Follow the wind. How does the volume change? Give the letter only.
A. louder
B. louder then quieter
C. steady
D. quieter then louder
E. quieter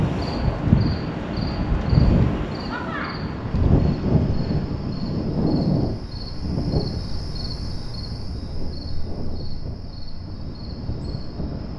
E.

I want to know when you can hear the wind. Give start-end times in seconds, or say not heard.
0.0-11.7.